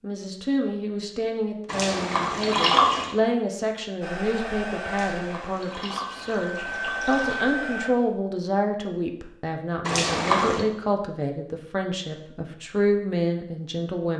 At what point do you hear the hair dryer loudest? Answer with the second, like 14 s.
7 s.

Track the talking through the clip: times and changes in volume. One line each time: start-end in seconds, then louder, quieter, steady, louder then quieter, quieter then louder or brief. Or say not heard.
0.0-14.1 steady.